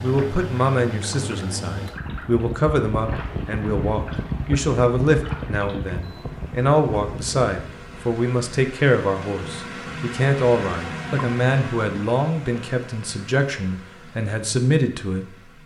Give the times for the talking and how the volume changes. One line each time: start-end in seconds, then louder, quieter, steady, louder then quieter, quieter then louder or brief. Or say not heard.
0.0-15.3 steady.